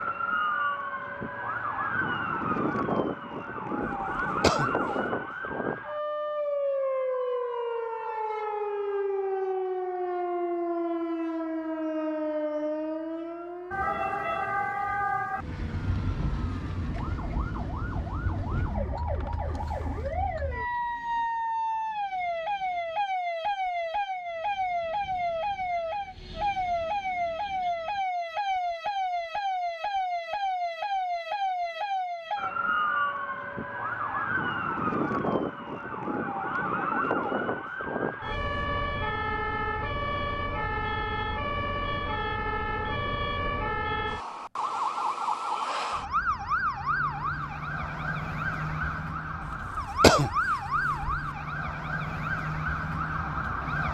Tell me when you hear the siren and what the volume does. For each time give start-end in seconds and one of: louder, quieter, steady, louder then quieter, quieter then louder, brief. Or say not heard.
0.0-53.9 steady.